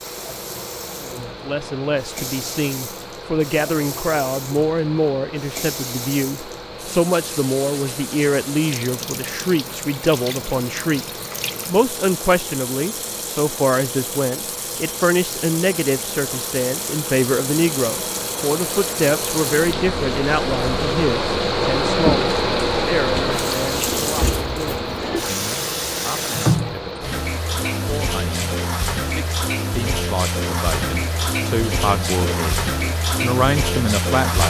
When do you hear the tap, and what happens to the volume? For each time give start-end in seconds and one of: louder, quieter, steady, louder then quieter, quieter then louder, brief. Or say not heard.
0.0-34.4 louder.